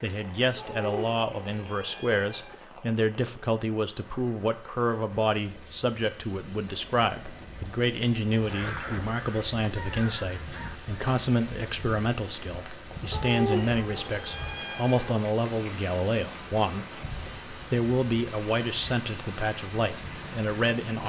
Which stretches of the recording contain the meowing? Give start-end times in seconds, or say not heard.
0.6-2.6, 13.1-15.2.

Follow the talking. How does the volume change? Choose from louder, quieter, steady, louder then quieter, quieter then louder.
steady.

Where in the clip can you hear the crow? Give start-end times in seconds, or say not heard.
8.3-10.9.